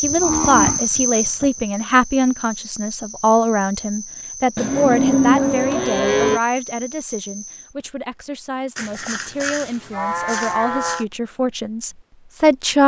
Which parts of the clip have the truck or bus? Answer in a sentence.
The truck or bus can't be heard in this clip.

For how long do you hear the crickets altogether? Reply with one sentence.
The crickets can be heard for 8 seconds in total.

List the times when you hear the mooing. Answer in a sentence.
The mooing can be heard from 0.0 to 1.6 s, from 4.5 to 6.4 s and from 8.8 to 11.1 s.